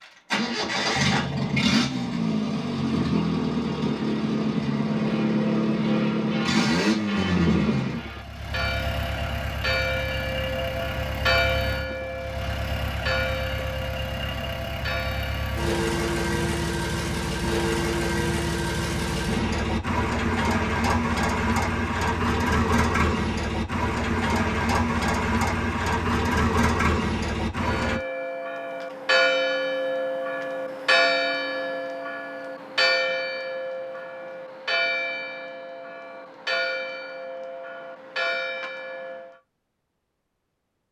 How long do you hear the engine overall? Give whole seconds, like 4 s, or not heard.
28 s.